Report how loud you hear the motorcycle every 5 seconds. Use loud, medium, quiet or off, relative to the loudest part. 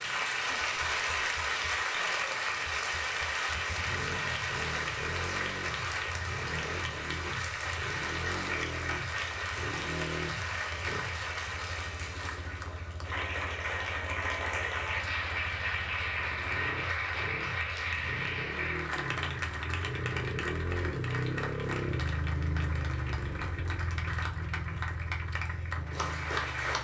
medium, medium, medium, medium, loud, medium.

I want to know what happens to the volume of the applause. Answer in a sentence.
The volume of the applause goes down.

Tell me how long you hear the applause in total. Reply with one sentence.
The applause can be heard for 27 seconds in total.